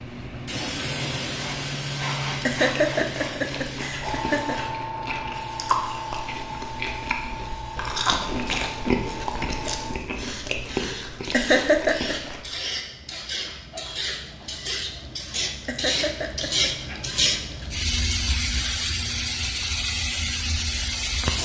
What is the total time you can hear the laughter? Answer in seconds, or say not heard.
4 s.